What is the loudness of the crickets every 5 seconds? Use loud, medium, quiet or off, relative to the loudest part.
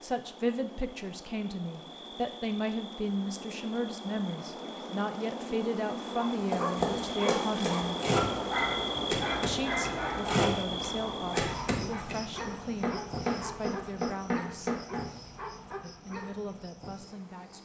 medium, loud, medium, quiet.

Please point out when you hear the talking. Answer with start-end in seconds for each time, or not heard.
0.0-8.0, 9.4-14.8, 15.8-17.6.